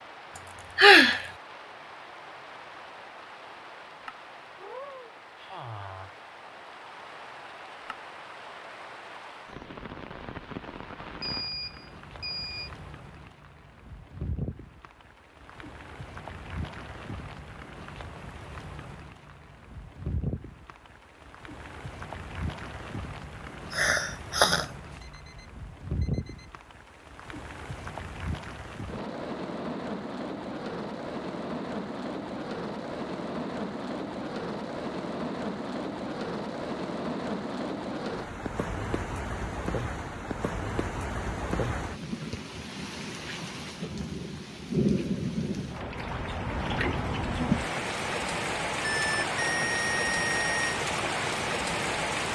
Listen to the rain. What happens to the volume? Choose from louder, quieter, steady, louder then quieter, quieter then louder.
louder.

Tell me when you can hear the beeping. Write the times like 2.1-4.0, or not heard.
11.2-12.7, 24.6-26.6, 48.8-50.8.